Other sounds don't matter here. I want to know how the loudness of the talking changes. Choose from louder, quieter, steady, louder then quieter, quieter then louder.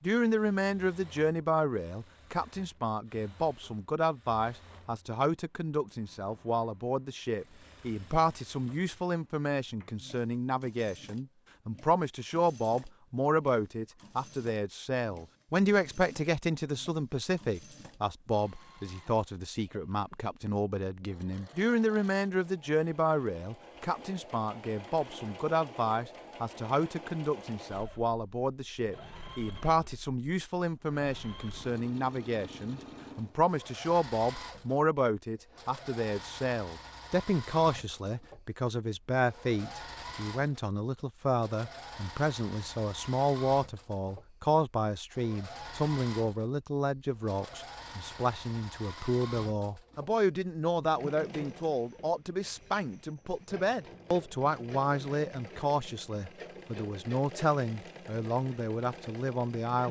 steady.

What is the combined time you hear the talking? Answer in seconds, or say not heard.
60 s.